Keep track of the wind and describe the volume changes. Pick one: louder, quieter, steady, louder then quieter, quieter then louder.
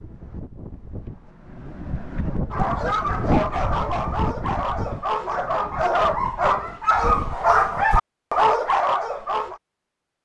louder then quieter.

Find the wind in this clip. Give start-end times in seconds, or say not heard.
0.0-7.8.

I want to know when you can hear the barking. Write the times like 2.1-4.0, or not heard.
2.5-9.6.